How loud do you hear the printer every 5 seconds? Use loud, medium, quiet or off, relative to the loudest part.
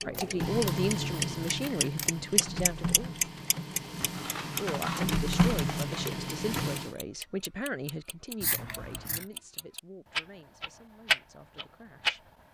medium, loud, off.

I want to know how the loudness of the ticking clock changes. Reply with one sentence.
The volume of the ticking clock goes down, then up.